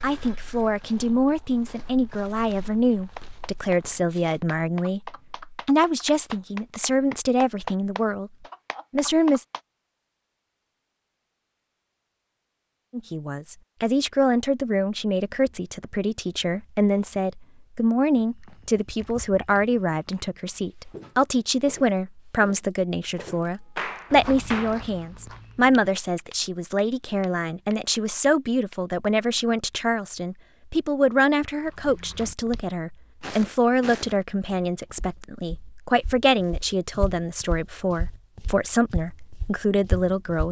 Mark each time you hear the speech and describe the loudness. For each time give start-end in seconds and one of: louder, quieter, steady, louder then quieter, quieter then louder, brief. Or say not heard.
0.0-8.3 steady
8.9-9.4 brief
12.9-40.4 steady.